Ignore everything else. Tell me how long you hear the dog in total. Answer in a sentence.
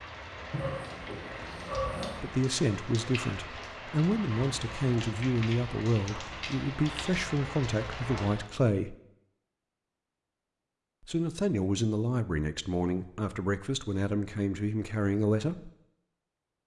You can hear the dog for 2 seconds altogether.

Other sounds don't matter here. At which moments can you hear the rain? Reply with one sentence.
You can hear the rain from 0.0 to 8.5 s.